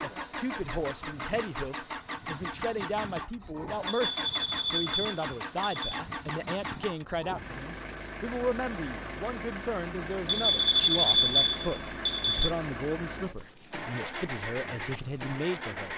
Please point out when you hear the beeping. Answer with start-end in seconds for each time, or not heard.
3.9-5.8, 10.2-12.5.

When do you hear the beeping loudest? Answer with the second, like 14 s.
11 s.